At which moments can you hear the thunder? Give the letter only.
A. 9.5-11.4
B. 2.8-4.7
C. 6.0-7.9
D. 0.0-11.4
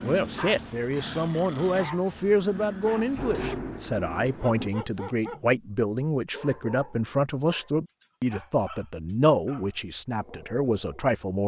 B.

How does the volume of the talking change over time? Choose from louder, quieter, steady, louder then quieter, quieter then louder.
steady.